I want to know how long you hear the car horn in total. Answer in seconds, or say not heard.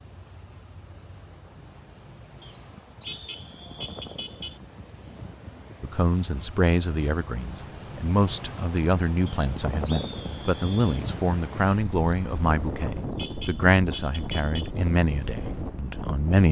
3 s.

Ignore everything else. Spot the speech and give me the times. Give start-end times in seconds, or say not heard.
5.8-16.4.